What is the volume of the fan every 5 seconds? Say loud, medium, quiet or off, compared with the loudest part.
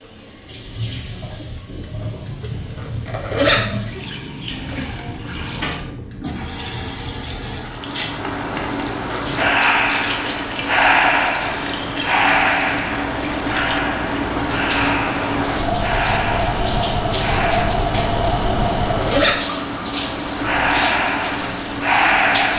quiet, medium, loud, loud, medium.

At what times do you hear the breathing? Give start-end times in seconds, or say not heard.
9.3-17.8, 20.3-22.5.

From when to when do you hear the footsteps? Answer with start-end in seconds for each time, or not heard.
not heard.